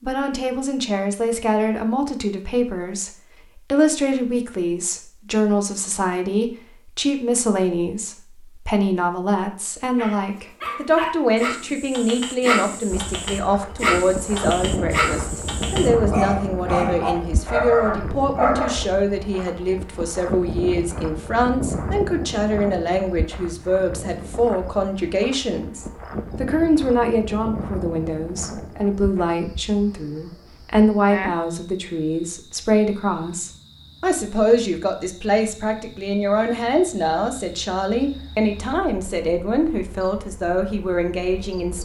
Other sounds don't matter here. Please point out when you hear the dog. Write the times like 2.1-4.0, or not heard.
9.9-18.8.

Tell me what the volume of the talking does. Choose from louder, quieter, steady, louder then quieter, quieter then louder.
steady.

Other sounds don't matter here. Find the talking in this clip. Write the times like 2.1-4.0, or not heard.
0.0-41.8.